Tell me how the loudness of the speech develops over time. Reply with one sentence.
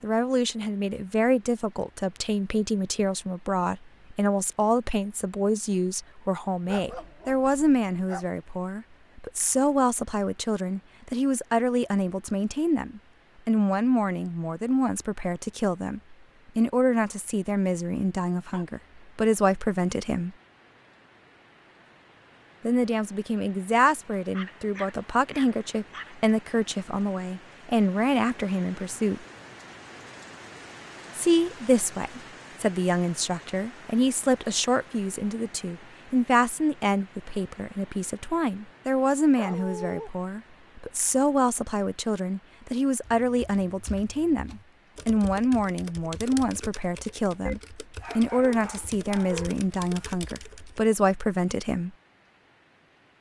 The volume of the speech stays about the same.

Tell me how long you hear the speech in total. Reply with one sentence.
The speech can be heard for 48 seconds in total.